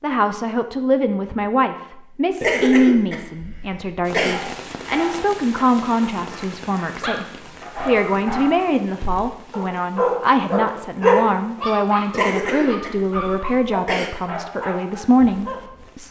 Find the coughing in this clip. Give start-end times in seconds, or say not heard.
2.4-4.3, 12.1-14.1.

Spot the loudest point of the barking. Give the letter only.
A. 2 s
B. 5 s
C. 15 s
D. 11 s
D.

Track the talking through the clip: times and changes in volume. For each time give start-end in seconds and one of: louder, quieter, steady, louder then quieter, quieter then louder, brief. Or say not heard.
0.0-16.0 steady.